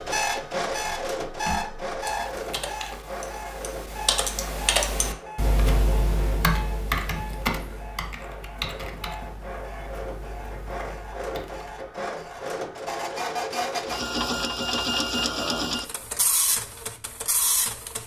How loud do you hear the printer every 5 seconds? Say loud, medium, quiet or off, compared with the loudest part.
loud, medium, loud, loud.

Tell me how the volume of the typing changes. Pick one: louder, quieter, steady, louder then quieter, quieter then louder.
louder then quieter.